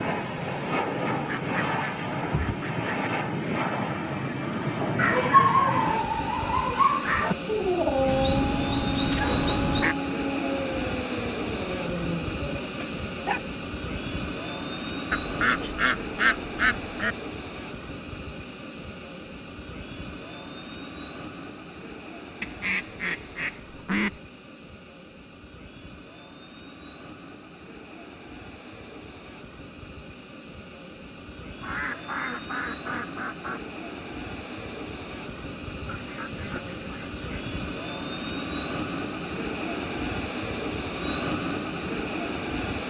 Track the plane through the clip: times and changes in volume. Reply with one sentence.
You can hear the plane from 0.0 to 42.8 s, getting quieter then louder.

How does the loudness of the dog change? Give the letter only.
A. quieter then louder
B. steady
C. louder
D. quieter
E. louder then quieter
D.